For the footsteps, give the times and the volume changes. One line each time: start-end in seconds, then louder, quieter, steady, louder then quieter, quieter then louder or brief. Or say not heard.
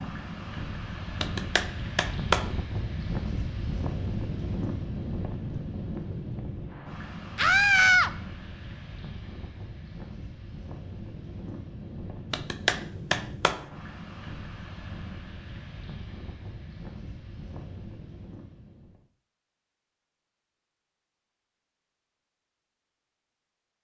not heard.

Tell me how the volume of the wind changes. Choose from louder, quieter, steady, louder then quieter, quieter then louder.
quieter.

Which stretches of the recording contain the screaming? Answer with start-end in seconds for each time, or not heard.
7.3-8.1.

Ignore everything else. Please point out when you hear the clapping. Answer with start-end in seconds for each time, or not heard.
1.2-2.5, 12.3-13.6.